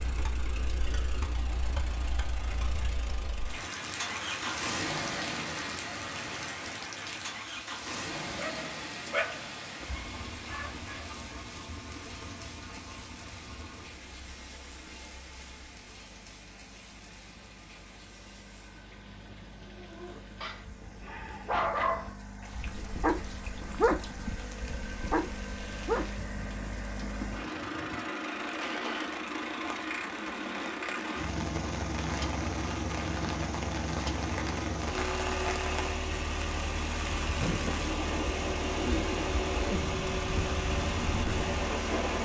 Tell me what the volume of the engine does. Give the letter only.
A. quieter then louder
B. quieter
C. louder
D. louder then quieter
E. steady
A.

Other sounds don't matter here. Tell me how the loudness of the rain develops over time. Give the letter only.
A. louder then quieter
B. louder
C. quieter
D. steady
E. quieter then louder
E.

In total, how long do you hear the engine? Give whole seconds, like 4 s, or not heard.
42 s.